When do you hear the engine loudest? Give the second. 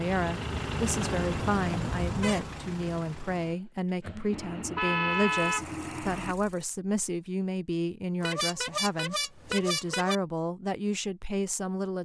1 s.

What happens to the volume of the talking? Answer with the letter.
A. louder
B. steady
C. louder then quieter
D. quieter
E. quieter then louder
B.